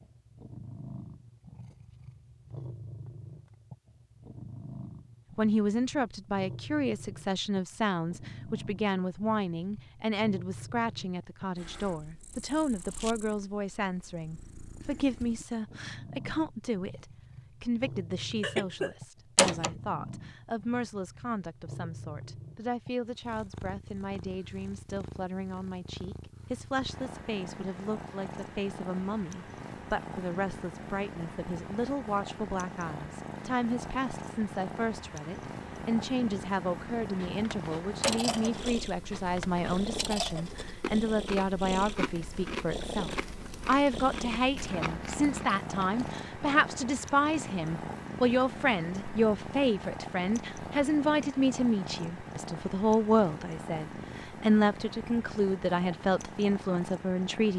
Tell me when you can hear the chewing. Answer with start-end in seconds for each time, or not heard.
37.1-46.1.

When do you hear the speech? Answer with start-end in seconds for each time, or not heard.
5.3-57.5.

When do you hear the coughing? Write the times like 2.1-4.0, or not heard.
18.4-18.9.